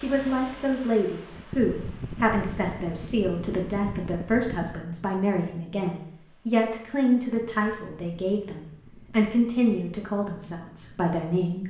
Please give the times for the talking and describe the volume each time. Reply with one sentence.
The talking can be heard from 0.0 to 11.6 s, at a steady volume.